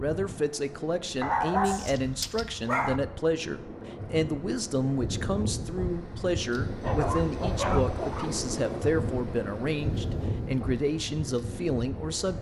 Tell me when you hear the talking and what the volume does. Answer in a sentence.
You can hear the talking from 0.0 to 12.3 s, at a steady volume.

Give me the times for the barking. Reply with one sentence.
You can hear the barking from 1.2 to 3.0 s and from 6.8 to 8.5 s.